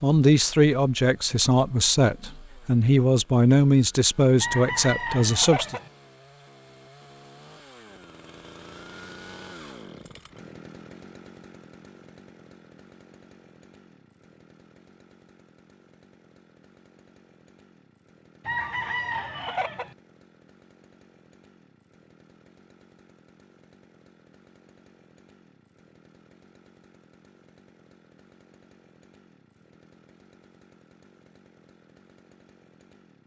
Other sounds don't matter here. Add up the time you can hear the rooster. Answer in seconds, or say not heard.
3 s.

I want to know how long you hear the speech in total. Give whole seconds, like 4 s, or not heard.
6 s.